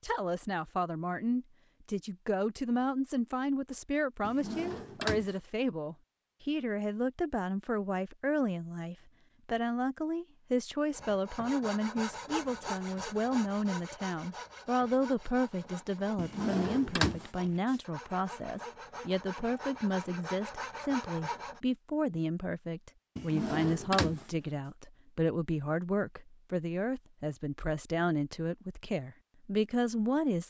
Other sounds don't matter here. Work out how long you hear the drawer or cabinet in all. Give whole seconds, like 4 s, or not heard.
4 s.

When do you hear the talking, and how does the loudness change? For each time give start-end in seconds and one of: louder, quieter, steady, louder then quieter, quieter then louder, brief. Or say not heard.
0.0-30.4 steady.